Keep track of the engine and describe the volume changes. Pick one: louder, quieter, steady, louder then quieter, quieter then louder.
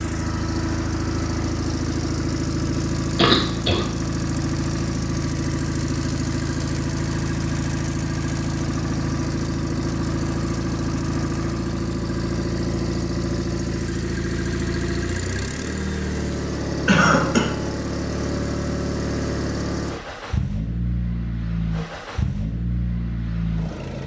steady.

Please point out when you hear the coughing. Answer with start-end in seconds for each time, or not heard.
3.1-3.9, 16.9-17.5.